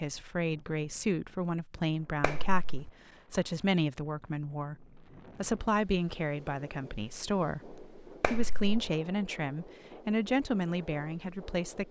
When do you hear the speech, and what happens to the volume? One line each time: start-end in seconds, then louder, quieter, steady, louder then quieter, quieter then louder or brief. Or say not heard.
0.0-11.8 steady.